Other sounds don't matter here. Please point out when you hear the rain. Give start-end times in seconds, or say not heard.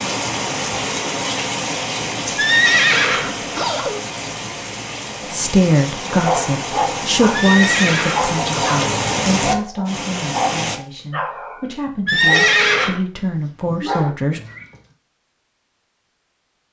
0.0-10.8.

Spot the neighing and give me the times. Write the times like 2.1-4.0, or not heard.
2.4-4.0, 7.3-8.8, 12.1-13.0.